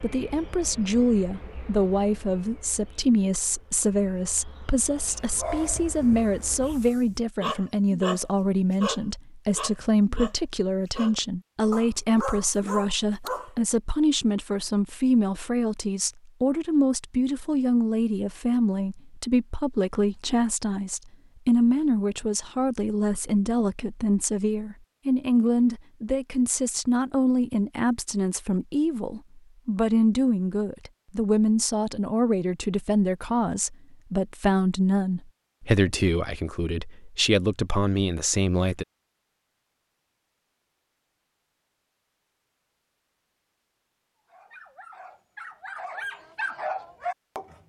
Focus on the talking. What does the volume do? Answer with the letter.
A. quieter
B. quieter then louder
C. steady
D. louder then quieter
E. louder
C.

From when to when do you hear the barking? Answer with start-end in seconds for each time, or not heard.
5.3-13.5, 44.3-47.5.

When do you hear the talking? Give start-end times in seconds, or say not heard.
0.0-38.9.